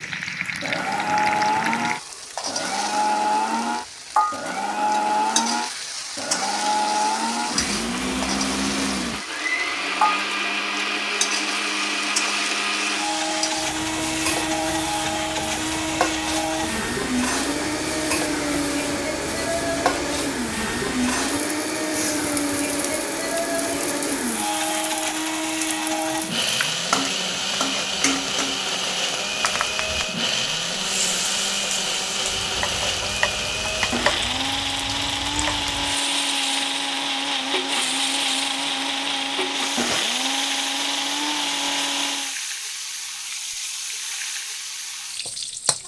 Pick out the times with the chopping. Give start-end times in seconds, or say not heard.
not heard.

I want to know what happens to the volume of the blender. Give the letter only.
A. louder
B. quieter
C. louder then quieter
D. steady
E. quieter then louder
D.